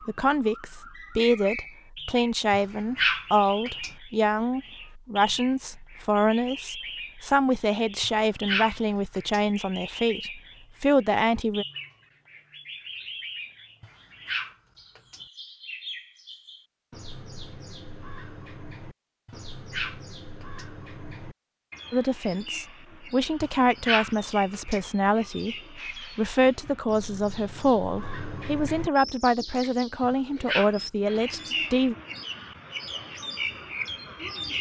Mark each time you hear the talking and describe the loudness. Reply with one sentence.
The talking can be heard from 0.1 to 11.7 s, at a steady volume; and from 21.9 to 31.9 s, at a steady volume.